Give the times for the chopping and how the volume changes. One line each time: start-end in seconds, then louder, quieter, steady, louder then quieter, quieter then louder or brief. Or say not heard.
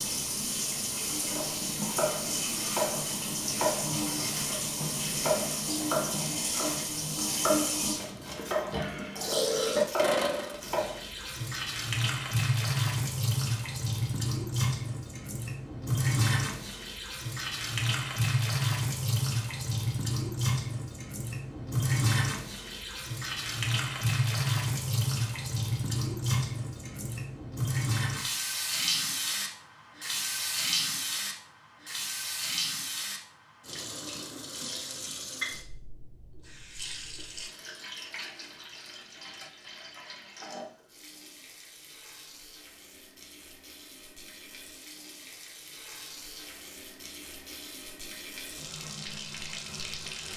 1.2-11.1 steady.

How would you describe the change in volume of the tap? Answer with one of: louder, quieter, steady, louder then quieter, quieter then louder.
quieter.